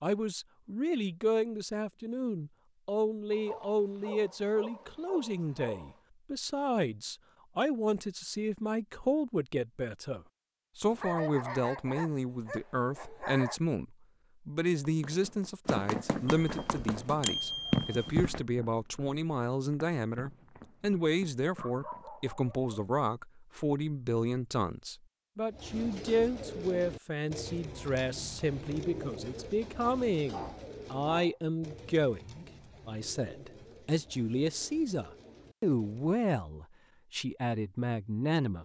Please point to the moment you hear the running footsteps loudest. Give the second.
18 s.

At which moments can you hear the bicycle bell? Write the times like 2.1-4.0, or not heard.
16.2-17.9.